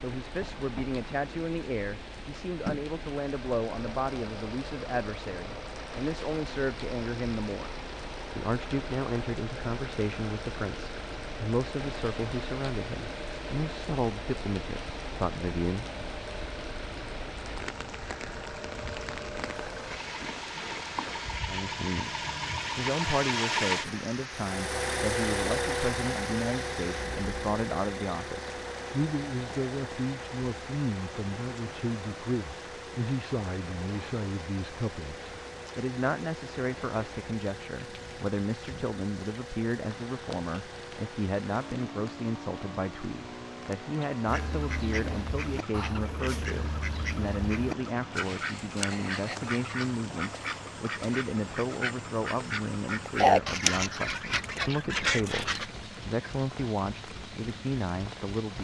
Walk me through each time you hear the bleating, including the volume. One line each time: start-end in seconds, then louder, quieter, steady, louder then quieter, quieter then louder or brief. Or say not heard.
not heard.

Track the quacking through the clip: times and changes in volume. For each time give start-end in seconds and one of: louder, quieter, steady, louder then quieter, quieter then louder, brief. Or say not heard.
44.2-55.6 louder.